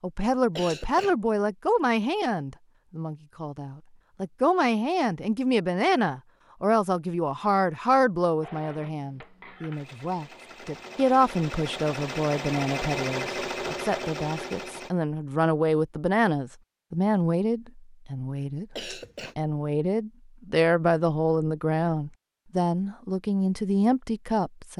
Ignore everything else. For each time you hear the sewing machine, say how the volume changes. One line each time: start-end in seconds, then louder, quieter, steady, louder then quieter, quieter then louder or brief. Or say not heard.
8.4-14.9 louder.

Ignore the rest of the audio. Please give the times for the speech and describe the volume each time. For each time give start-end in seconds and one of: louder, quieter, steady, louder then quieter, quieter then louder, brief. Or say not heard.
0.0-24.7 steady.